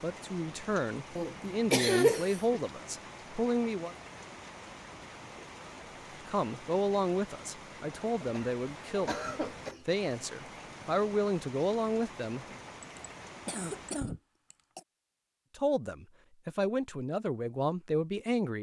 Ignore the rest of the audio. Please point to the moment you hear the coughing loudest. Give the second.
2 s.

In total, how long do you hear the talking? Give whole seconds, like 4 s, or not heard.
13 s.